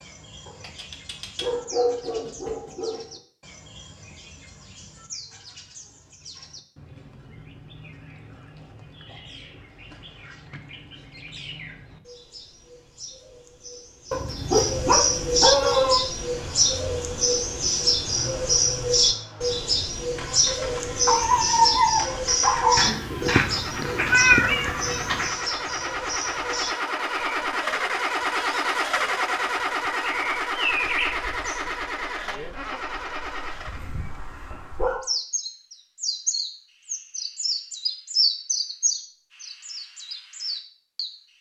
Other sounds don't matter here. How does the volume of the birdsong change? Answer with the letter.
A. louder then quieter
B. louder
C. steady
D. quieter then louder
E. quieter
A.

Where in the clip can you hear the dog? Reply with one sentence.
You can hear the dog from 0.5 to 3.0 s, from 14.1 to 16.0 s, from 21.1 to 22.9 s and from 33.6 to 35.0 s.